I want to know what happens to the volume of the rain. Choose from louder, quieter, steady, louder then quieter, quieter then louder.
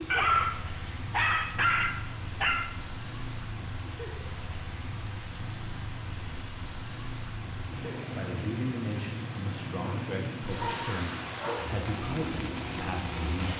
louder.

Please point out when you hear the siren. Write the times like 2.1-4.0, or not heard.
not heard.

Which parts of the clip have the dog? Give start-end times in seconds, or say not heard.
0.1-2.7, 9.8-11.8.